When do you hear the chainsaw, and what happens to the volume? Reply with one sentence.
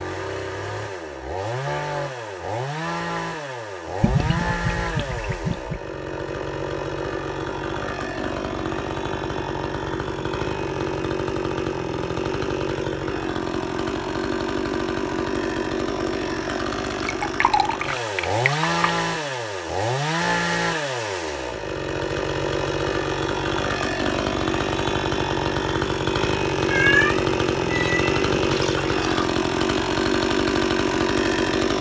The chainsaw can be heard from 0.0 to 31.7 s, getting louder.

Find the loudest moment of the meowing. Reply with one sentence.
The loudest moment of the meowing is at 27 seconds.